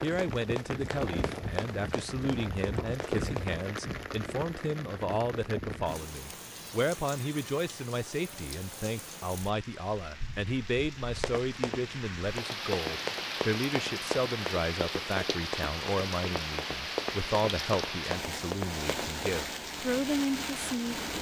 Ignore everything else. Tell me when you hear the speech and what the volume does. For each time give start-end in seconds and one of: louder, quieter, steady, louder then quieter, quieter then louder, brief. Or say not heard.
0.0-21.0 steady.